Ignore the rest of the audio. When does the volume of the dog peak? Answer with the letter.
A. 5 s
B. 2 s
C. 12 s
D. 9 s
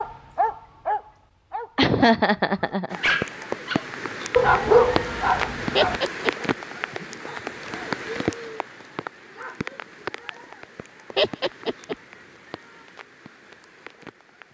A.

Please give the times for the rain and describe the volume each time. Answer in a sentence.
You can hear the rain from 2.9 to 14.4 s, getting quieter.